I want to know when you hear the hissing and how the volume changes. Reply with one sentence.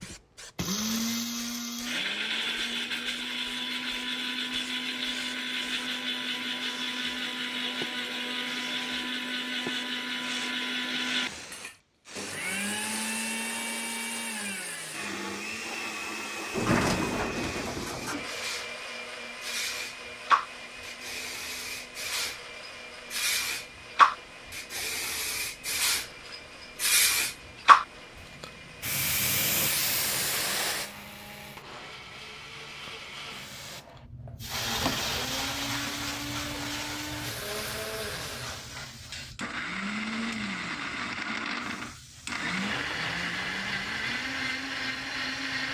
You can hear the hissing from 0.0 to 45.6 s, getting louder then quieter.